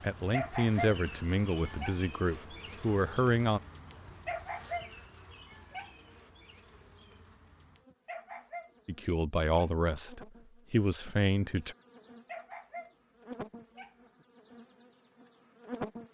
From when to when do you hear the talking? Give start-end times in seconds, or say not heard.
0.0-3.6, 8.8-11.8.